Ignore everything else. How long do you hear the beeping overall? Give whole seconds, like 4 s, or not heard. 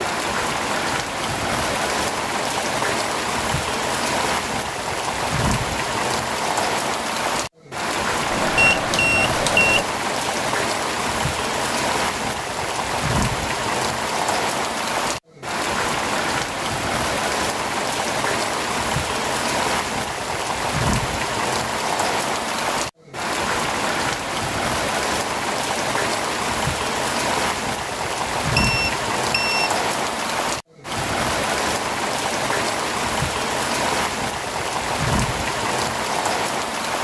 3 s.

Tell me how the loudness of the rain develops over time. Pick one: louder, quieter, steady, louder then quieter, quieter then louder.
steady.